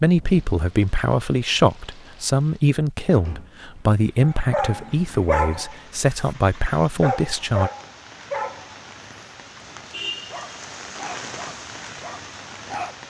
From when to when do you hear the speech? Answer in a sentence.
The speech can be heard from 0.0 to 7.7 s.